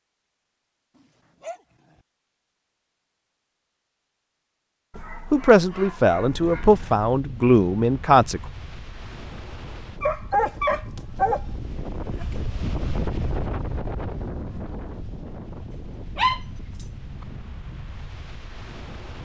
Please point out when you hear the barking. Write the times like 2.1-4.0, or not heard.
0.9-2.0, 4.9-7.0, 10.0-11.4, 15.7-16.9.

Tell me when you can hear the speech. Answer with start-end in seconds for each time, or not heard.
5.3-8.4.